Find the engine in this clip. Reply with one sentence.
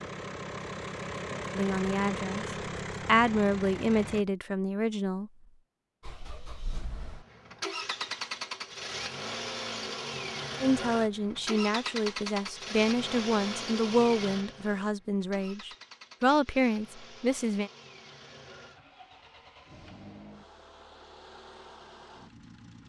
You can hear the engine from 0.0 to 4.2 s and from 6.0 to 22.8 s.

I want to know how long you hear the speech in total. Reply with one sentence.
The speech can be heard for 10 seconds in total.